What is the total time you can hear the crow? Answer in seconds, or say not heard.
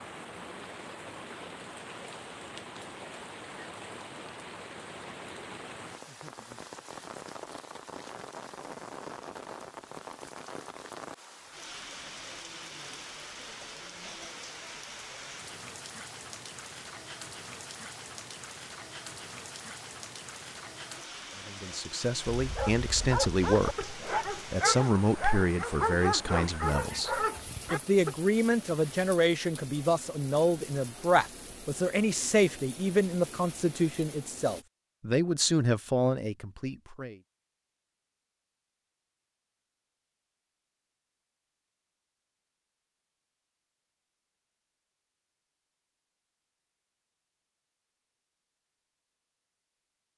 not heard.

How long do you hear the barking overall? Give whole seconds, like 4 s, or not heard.
6 s.